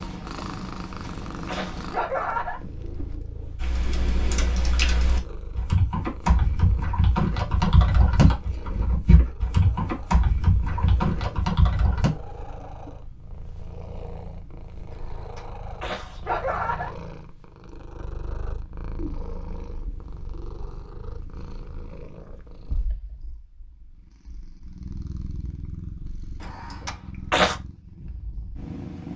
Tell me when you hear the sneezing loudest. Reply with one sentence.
The loudest moment of the sneezing is at 27 seconds.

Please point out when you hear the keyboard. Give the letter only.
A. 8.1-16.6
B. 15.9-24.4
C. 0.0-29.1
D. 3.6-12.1
D.